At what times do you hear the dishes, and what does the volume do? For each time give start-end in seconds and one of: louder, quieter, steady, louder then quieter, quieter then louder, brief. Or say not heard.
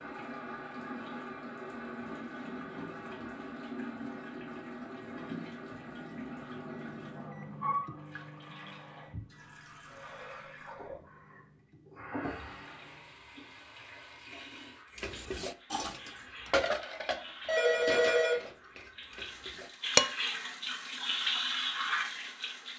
14.9-20.1 louder then quieter.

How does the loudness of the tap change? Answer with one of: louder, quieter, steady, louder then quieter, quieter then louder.
quieter then louder.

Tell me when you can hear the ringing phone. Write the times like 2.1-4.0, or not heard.
17.4-18.4.